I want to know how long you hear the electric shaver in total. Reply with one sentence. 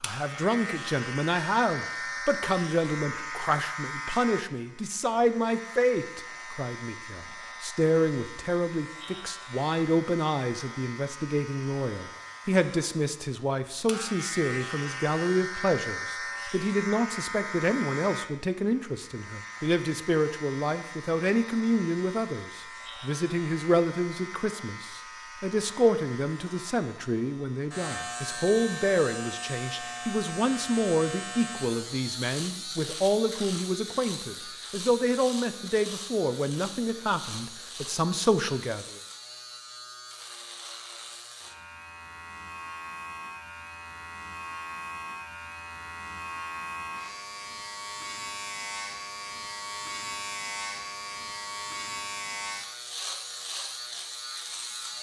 The electric shaver can be heard for 55 seconds in total.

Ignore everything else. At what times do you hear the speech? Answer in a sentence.
You can hear the speech from 0.0 to 39.0 s.